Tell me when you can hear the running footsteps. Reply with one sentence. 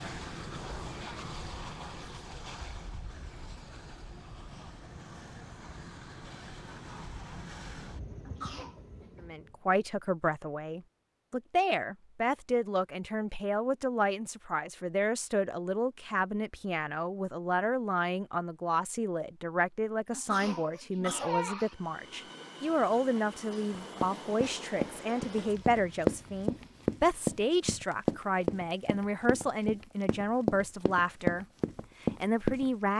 The running footsteps can be heard from 23.7 to 32.6 s.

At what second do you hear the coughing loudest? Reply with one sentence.
The loudest moment of the coughing is at 21 seconds.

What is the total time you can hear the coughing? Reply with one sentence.
You can hear the coughing for 2 seconds altogether.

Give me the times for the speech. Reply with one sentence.
You can hear the speech from 9.2 to 32.9 s.